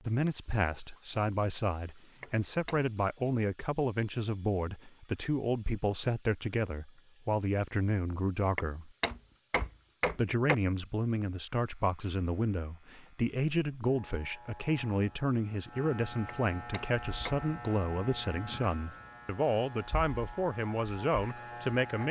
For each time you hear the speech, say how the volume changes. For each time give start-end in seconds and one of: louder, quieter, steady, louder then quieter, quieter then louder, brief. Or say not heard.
0.1-8.9 steady
10.2-22.0 steady.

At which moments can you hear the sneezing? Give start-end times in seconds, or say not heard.
not heard.